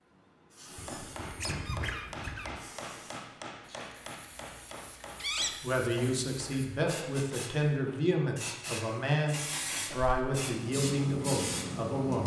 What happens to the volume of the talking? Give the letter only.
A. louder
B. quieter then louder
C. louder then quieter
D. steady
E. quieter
D.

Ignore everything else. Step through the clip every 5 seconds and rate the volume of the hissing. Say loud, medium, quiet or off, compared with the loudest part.
quiet, medium, loud.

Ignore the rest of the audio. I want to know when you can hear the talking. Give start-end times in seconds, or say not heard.
5.6-12.2.